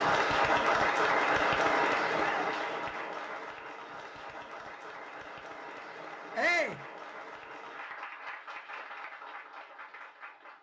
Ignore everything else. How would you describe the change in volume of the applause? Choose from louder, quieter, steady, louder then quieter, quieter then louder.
quieter.